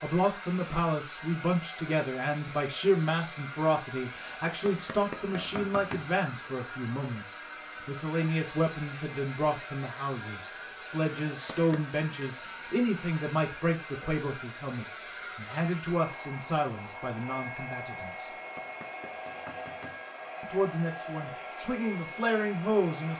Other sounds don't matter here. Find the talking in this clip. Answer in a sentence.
The talking can be heard from 0.0 to 18.3 s and from 20.4 to 23.1 s.